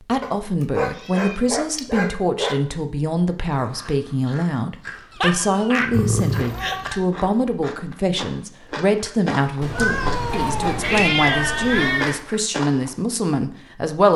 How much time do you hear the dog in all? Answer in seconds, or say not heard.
6 s.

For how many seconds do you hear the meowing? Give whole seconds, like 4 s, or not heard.
5 s.